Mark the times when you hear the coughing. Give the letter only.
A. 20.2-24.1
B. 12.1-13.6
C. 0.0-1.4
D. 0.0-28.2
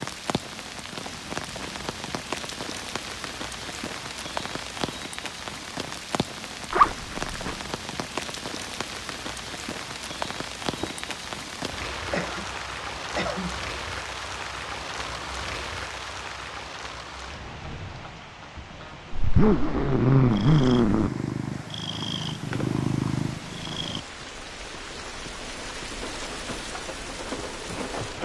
B.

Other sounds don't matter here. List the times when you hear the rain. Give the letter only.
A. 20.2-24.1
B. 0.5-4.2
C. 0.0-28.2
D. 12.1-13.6
C.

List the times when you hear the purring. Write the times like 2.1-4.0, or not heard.
20.2-24.1.